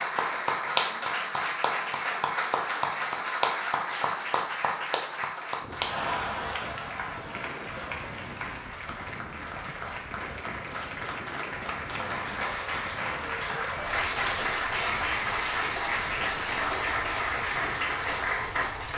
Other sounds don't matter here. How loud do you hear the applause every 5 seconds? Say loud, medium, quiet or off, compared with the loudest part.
loud, medium, loud, loud.